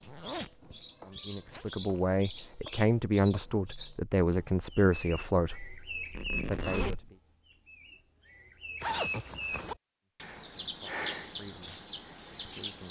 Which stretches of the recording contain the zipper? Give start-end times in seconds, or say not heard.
0.0-1.6, 6.1-7.1, 8.8-9.8.